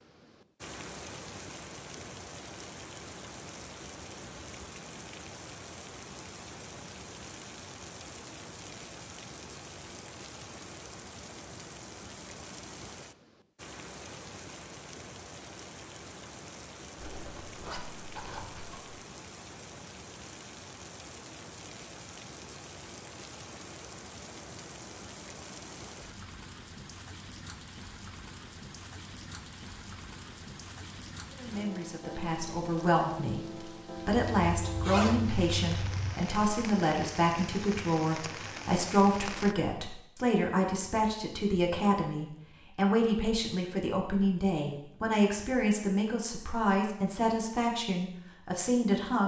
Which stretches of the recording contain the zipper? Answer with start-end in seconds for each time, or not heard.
16.9-18.9, 34.1-36.1.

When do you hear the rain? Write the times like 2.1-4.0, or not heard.
0.0-39.5.